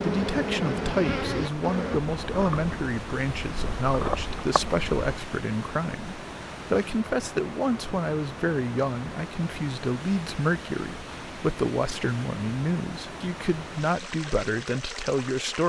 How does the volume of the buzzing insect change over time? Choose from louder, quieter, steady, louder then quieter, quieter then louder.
quieter then louder.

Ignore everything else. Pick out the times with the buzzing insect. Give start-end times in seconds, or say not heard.
0.0-5.1.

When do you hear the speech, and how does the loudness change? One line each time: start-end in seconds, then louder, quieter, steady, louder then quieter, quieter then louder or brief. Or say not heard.
0.0-15.6 steady.